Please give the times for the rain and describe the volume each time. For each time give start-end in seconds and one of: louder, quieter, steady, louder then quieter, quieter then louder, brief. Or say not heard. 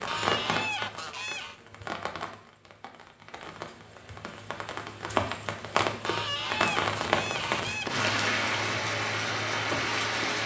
0.0-10.4 quieter then louder.